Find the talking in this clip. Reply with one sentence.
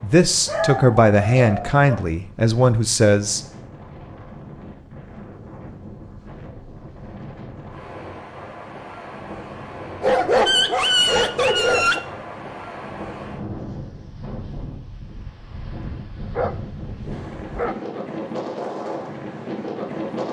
You can hear the talking from 0.0 to 3.4 s.